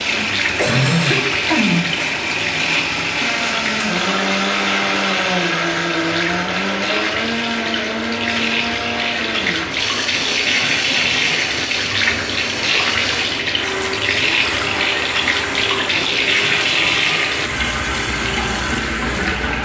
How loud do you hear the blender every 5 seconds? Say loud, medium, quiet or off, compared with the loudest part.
loud, loud, medium, medium.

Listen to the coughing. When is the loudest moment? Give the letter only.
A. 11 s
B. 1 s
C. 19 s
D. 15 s
B.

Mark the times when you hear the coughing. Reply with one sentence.
The coughing can be heard from 0.6 to 2.0 s and from 10.4 to 11.2 s.